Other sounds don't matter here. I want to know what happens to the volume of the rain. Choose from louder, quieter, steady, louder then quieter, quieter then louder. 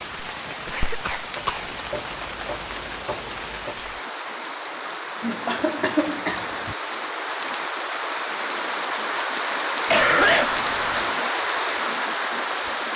louder.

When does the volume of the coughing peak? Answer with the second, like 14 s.
10 s.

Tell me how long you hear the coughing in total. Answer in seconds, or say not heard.
4 s.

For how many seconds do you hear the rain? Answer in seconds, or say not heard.
13 s.